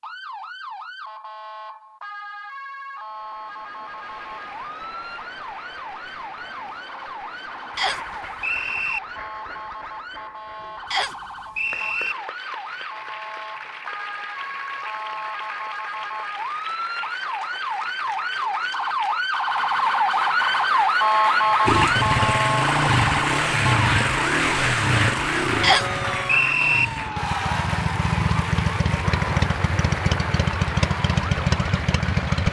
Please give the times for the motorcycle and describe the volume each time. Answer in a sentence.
You can hear the motorcycle from 21.6 to 32.4 s, getting quieter then louder.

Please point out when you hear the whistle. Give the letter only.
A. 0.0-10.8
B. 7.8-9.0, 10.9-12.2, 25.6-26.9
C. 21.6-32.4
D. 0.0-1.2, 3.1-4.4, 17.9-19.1
B.